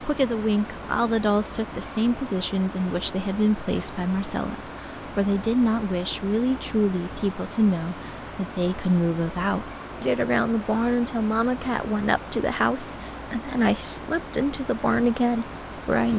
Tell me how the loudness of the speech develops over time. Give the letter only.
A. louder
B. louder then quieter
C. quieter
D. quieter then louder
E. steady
E.